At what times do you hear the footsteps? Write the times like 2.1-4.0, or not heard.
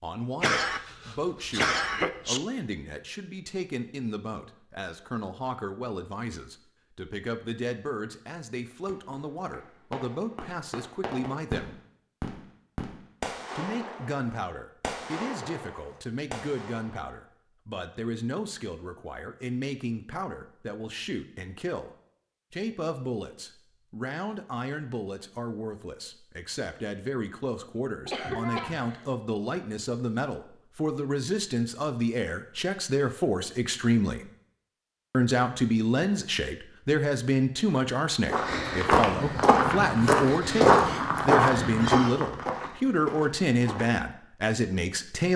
38.2-44.0.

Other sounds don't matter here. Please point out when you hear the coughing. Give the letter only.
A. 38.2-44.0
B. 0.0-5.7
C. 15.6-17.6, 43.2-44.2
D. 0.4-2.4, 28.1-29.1
D.